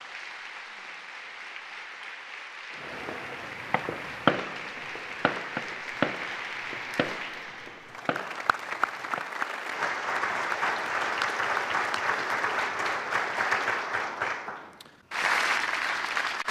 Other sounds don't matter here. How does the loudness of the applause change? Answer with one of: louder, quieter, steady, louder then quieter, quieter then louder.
louder.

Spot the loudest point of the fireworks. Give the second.
4 s.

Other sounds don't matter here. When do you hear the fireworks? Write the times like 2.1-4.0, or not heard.
2.8-9.2.